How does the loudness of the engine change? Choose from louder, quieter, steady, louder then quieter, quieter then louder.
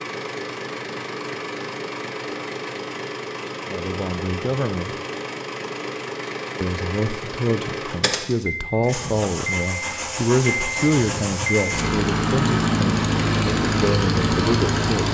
louder.